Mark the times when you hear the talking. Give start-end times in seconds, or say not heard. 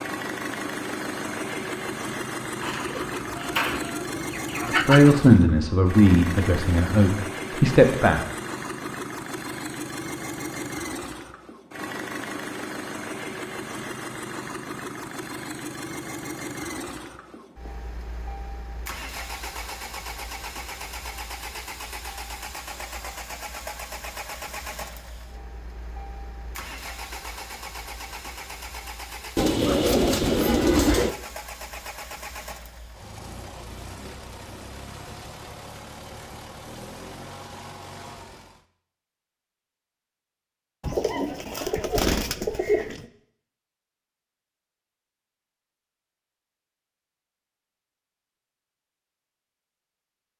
4.7-8.2.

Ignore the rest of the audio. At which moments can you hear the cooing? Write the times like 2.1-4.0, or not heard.
2.6-5.2, 29.4-31.1, 40.8-43.0.